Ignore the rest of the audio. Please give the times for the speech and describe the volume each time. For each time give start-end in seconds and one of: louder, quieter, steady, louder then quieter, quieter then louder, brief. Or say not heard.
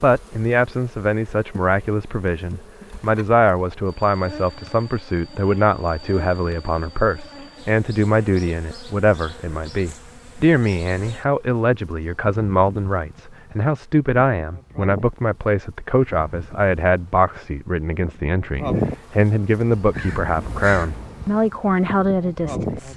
0.0-22.9 steady.